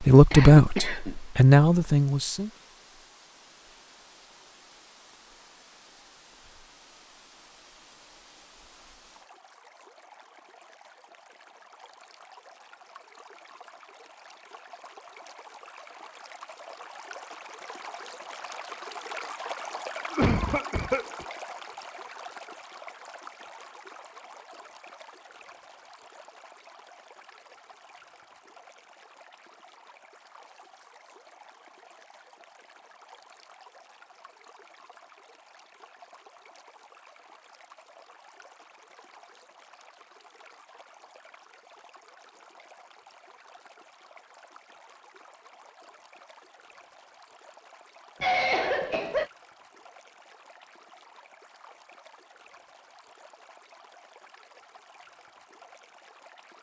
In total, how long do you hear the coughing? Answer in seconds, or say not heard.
3 s.